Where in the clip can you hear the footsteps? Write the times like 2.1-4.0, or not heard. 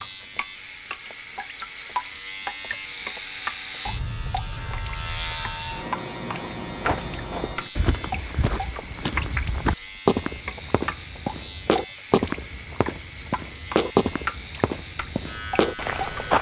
6.3-16.3.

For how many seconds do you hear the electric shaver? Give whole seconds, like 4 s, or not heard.
16 s.